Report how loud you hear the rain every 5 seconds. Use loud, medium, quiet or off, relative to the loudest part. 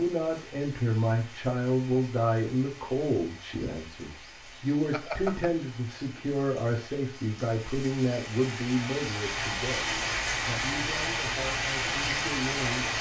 quiet, medium, loud.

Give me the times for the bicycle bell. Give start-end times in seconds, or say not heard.
4.9-5.5.